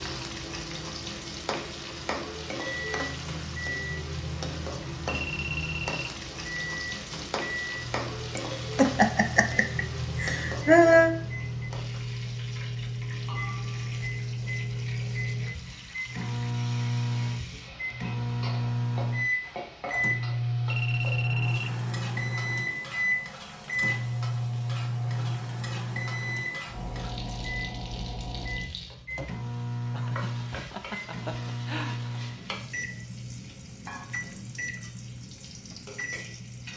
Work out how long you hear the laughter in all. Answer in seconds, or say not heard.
5 s.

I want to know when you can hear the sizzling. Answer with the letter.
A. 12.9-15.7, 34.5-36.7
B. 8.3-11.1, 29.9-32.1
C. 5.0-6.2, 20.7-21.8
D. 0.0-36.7
D.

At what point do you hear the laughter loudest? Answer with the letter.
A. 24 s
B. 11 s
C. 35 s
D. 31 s
B.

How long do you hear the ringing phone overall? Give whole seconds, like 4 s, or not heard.
2 s.